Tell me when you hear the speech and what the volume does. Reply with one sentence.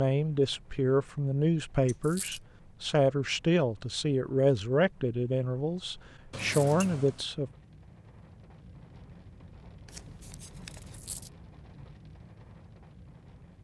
You can hear the speech from 0.0 to 7.5 s, at a steady volume.